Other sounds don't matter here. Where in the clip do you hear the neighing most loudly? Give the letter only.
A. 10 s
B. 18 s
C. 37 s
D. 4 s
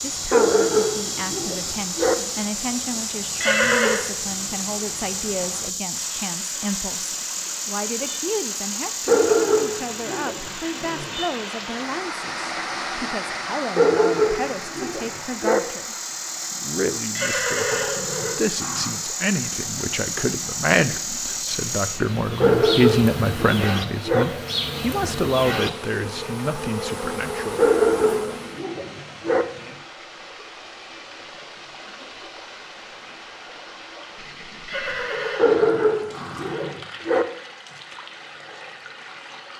D.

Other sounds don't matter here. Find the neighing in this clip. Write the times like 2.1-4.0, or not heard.
3.4-4.0, 17.1-19.0, 34.6-36.7.